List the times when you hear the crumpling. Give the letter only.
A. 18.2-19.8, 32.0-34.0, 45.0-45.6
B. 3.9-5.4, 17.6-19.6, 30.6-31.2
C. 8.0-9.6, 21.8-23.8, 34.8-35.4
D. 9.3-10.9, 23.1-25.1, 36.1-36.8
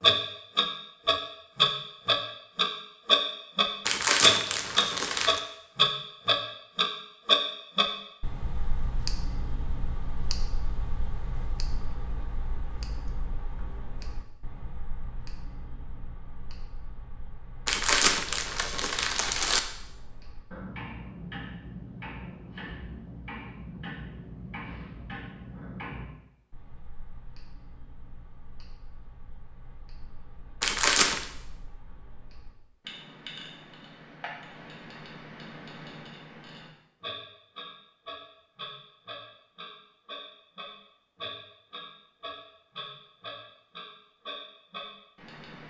B.